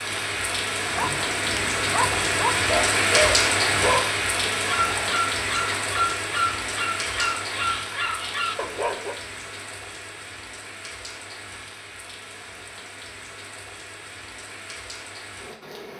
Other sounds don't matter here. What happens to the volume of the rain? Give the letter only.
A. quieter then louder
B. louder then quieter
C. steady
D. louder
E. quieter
E.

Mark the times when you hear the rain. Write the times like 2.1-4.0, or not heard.
0.0-15.9.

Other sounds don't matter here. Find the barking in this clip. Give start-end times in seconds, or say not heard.
0.8-9.2.